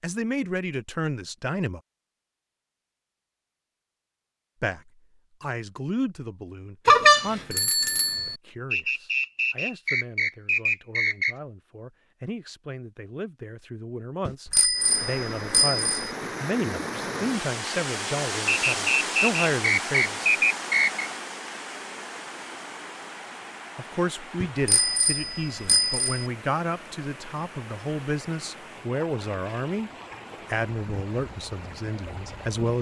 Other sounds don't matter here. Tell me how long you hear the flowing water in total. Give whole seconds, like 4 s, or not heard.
18 s.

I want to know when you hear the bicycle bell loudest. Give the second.
7 s.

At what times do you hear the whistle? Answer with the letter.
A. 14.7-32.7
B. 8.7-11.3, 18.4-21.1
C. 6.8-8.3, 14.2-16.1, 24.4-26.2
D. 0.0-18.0
B.